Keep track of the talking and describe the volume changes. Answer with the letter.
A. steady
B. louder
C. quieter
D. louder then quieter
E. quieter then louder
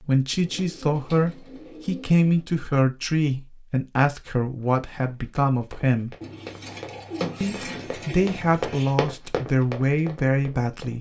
A.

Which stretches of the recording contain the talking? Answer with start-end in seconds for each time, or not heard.
0.0-6.2, 7.4-10.9.